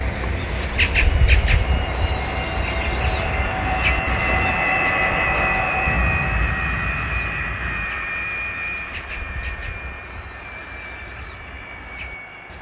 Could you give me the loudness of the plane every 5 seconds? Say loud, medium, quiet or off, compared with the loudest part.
loud, loud, quiet.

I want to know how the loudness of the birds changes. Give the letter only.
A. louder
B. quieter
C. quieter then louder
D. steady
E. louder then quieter
B.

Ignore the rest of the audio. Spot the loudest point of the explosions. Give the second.
6 s.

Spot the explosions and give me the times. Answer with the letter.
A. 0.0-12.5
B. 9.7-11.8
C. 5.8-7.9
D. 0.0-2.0
C.